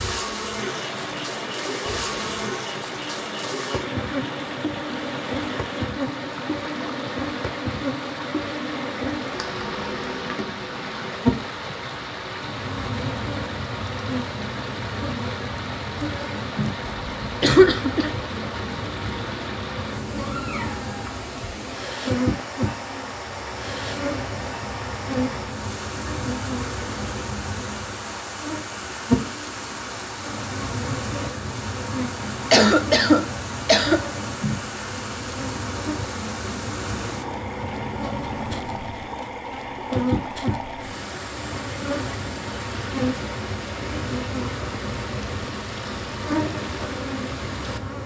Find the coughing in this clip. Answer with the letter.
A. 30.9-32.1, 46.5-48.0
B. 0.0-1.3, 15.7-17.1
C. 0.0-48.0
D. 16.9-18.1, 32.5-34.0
D.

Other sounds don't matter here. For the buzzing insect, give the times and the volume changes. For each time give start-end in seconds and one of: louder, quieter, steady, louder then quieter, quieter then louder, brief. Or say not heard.
0.0-48.0 steady.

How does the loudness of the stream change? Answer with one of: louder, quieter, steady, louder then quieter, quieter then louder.
steady.